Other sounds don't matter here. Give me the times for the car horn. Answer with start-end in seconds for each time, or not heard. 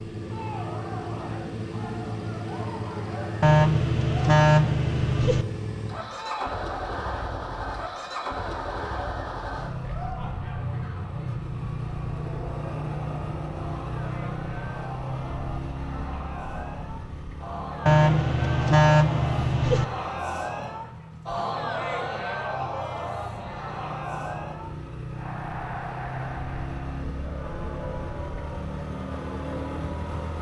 3.4-5.5, 17.9-19.9.